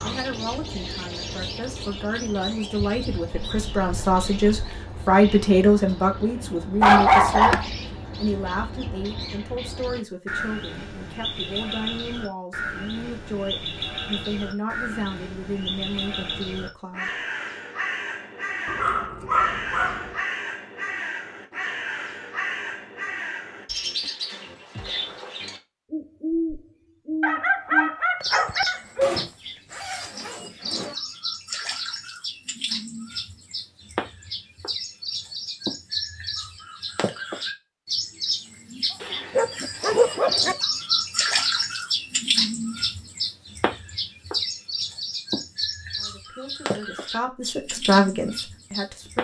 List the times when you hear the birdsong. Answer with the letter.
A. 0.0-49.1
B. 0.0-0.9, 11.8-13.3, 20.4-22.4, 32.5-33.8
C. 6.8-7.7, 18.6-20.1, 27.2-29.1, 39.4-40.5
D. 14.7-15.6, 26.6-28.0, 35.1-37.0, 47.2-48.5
A.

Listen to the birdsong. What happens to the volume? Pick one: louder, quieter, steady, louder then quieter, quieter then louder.
louder.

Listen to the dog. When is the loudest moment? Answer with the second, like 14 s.
7 s.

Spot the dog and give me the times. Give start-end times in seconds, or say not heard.
6.8-7.7, 18.6-20.1, 27.2-29.1, 39.4-40.5.